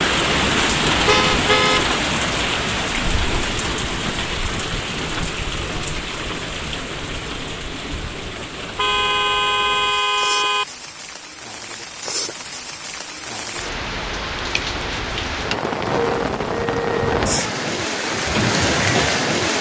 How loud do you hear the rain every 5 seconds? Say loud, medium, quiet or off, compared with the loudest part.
loud, medium, medium, loud.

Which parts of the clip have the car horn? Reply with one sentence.
The car horn can be heard from 1.1 to 2.0 s, from 8.8 to 10.7 s and from 15.9 to 17.2 s.